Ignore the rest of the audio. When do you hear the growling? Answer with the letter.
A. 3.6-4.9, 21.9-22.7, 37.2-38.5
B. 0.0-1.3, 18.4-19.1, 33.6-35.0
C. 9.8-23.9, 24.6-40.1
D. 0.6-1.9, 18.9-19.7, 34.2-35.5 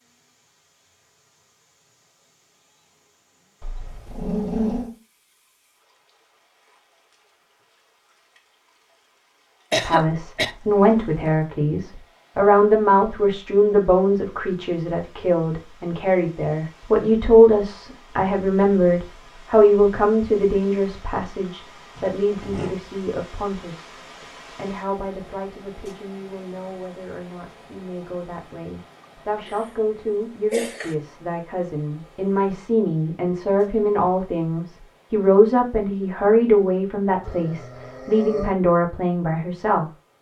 A.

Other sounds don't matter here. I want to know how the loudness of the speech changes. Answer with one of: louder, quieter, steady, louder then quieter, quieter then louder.
quieter then louder.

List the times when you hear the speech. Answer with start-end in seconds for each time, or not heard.
9.8-23.9, 24.6-40.1.